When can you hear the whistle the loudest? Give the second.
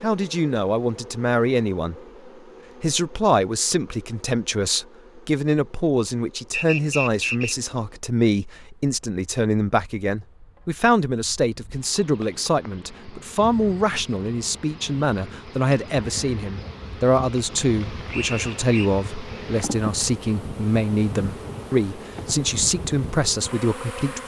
7 s.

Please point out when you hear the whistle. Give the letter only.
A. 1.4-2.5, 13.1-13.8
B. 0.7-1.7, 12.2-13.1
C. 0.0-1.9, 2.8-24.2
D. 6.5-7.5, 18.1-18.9
D.